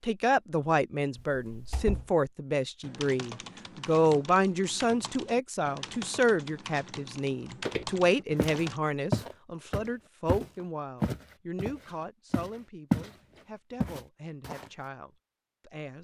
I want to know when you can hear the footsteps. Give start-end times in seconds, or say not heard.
7.7-13.1, 13.8-14.7.